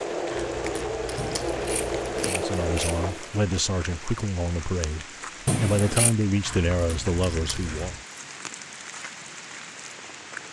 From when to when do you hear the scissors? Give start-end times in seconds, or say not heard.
1.1-3.4, 5.5-6.2.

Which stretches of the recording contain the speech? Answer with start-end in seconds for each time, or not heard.
2.2-8.0.